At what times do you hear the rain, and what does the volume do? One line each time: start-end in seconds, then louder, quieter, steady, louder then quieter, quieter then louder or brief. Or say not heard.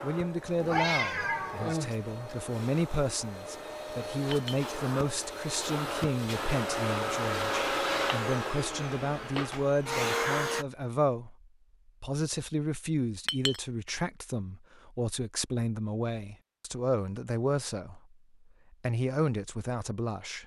not heard.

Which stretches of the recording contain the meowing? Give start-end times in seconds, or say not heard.
0.6-2.4.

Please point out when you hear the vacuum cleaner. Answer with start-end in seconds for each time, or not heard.
0.0-10.7.